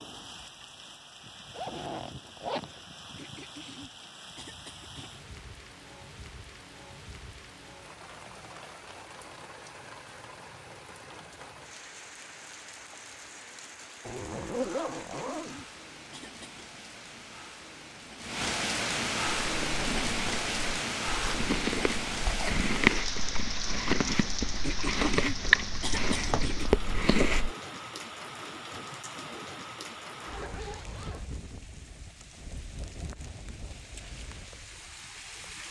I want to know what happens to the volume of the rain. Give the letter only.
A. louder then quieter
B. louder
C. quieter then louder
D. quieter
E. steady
A.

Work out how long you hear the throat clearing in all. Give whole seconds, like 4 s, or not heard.
6 s.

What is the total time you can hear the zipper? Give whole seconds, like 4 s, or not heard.
4 s.